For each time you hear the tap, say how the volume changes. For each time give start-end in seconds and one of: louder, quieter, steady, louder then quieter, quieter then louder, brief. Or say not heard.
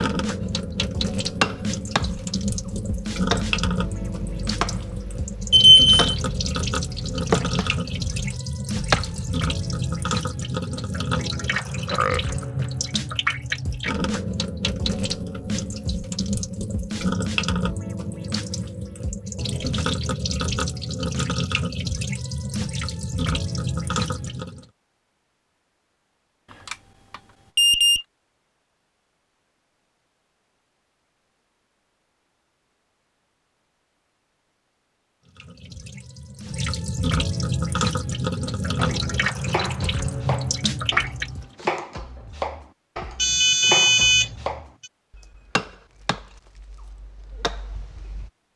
0.0-24.6 steady
35.2-41.5 louder.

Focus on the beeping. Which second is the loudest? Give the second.
6 s.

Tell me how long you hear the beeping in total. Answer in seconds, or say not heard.
3 s.